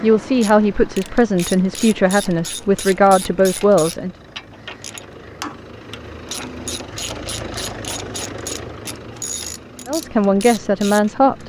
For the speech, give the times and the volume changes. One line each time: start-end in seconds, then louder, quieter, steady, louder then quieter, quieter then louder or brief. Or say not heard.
0.0-4.1 steady
9.8-11.4 brief.